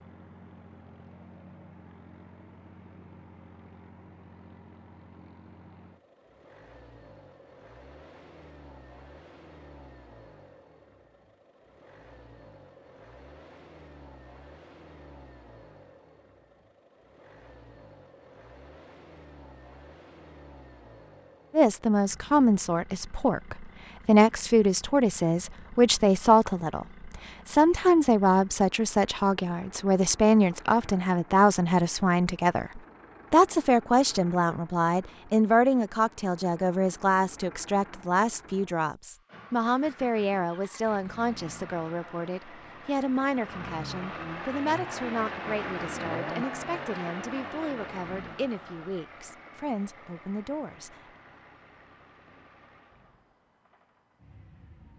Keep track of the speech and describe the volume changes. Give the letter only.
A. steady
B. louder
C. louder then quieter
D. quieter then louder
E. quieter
E.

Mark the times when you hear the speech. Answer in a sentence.
You can hear the speech from 21.5 to 51.1 s.